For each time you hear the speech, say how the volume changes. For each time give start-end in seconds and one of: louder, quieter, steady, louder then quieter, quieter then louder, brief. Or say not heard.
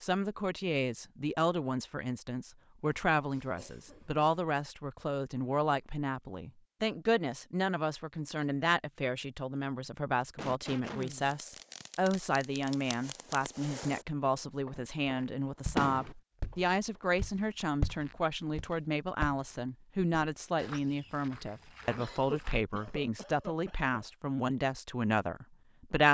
0.0-26.0 steady.